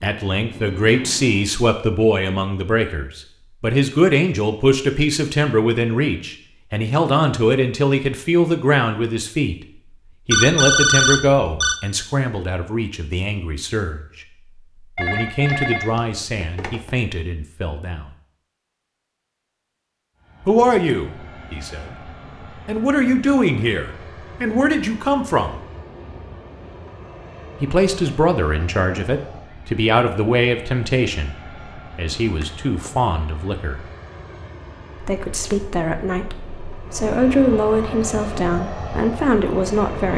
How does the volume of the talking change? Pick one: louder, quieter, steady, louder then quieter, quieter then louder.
steady.